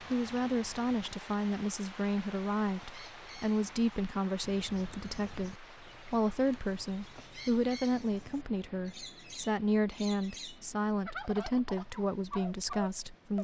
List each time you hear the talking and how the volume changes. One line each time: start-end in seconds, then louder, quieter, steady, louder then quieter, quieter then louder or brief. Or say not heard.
0.1-13.3 steady.